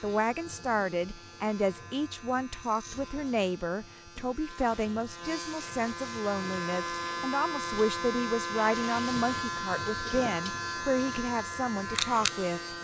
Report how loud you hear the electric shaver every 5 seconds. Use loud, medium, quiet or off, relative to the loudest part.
quiet, loud, loud.